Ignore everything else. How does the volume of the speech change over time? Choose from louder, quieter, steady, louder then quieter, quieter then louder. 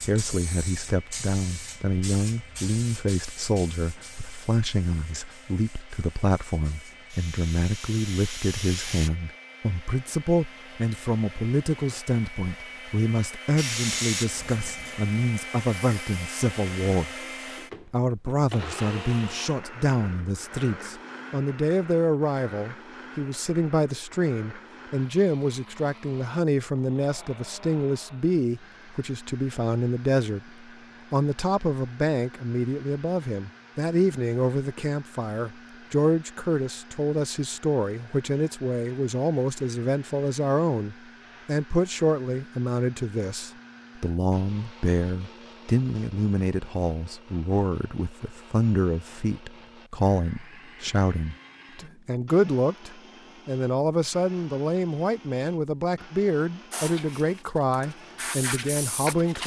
steady.